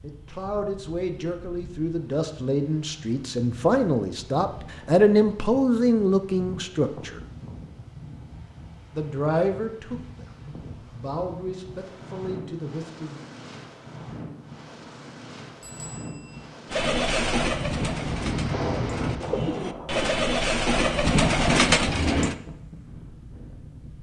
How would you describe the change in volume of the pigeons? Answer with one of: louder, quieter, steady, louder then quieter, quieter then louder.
quieter then louder.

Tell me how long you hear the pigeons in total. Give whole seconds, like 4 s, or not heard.
6 s.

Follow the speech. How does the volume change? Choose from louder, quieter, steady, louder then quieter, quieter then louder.
louder then quieter.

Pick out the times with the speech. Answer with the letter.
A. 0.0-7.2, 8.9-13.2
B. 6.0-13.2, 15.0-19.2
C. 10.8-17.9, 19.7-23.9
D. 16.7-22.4
A.